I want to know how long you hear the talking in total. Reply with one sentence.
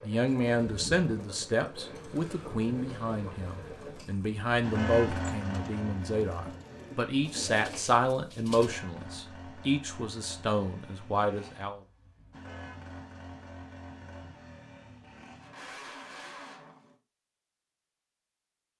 The talking can be heard for 12 seconds in total.